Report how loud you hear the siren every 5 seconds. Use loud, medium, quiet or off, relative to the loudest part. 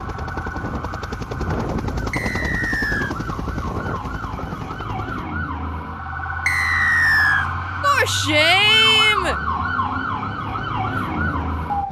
medium, loud, loud.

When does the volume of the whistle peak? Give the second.
7 s.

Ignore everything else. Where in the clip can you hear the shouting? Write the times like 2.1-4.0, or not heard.
7.8-9.3.